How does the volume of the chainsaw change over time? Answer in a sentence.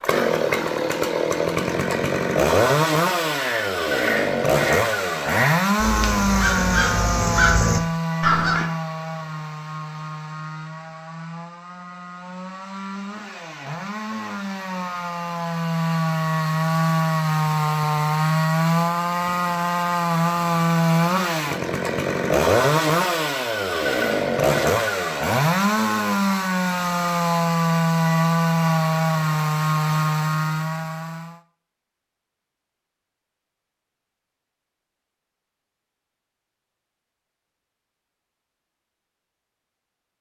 The volume of the chainsaw goes down, then up.